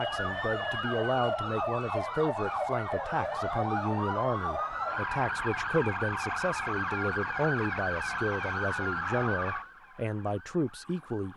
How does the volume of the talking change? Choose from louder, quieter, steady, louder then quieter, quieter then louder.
steady.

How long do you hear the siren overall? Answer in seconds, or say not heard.
11 s.